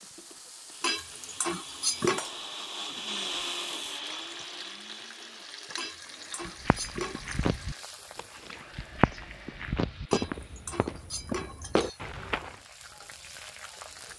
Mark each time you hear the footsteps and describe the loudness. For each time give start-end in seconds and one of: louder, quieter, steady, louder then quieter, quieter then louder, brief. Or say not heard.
6.5-12.6 quieter then louder.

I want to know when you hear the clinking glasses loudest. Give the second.
2 s.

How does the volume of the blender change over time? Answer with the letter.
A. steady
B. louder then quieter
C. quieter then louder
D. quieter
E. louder
B.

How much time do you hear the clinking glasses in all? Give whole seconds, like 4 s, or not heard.
5 s.